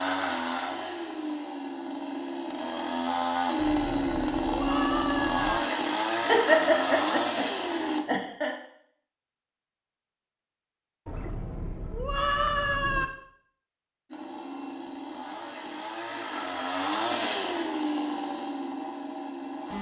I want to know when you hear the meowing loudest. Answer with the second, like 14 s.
12 s.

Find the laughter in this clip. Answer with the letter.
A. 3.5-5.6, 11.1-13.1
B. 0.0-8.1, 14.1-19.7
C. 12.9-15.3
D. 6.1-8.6
D.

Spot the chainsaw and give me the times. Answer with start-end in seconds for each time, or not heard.
0.0-8.1, 14.1-19.7.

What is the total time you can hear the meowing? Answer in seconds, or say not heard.
4 s.